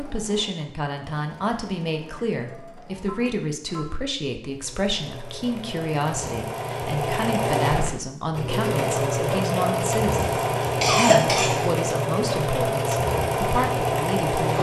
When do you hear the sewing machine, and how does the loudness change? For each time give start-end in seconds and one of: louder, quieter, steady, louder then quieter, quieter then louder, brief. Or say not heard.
0.0-14.5 louder.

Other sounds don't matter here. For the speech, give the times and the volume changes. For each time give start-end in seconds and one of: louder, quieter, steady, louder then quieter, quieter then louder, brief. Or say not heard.
0.0-14.5 steady.